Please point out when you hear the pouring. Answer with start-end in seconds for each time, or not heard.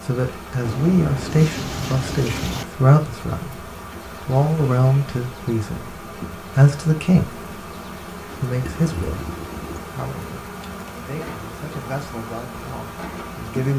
0.6-2.6, 8.6-9.8.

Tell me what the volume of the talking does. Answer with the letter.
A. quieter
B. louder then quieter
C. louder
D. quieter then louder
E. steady
A.